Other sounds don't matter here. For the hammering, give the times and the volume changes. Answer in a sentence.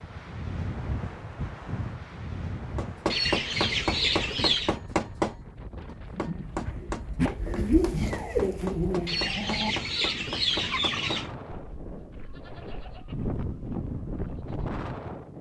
You can hear the hammering from 2.8 to 11.2 s, getting quieter.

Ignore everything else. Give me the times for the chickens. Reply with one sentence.
You can hear the chickens from 3.1 to 4.8 s and from 9.1 to 11.3 s.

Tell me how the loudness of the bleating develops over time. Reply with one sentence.
The volume of the bleating goes up, then down.